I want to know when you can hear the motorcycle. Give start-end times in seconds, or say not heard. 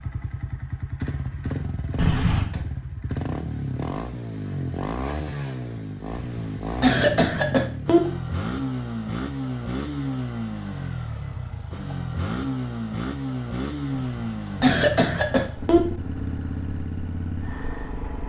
0.0-18.2.